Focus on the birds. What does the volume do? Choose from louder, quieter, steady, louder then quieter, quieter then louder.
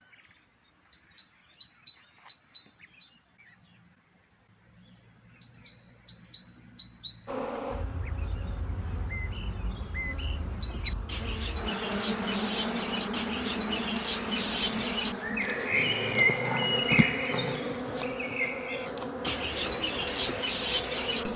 louder.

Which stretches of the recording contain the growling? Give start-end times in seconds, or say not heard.
15.7-17.6.